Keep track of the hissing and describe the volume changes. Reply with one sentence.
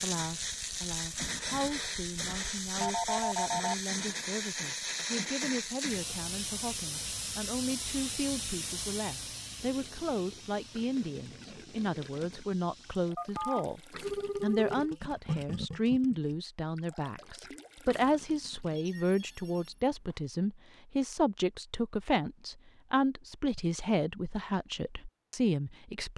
The volume of the hissing goes down.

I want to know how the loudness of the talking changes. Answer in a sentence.
The loudness of the talking goes up.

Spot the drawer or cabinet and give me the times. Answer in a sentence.
The drawer or cabinet can't be heard in this clip.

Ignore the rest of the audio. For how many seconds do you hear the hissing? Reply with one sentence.
The hissing can be heard for 13 seconds in total.